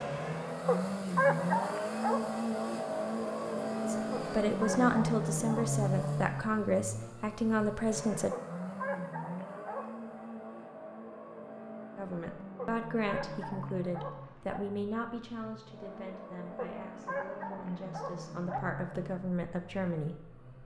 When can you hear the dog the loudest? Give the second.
1 s.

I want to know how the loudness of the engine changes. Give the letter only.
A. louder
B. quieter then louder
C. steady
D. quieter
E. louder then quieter
D.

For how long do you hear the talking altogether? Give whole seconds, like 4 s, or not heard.
13 s.